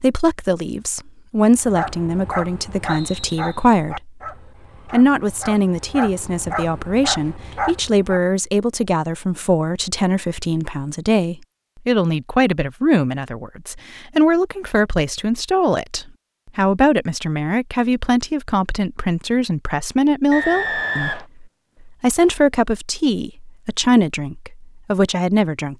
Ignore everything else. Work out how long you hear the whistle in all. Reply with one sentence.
The whistle can be heard for 2 seconds in total.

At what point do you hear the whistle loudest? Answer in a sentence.
The volume of the whistle peaks at 21 seconds.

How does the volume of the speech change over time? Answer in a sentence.
The loudness of the speech stays about the same.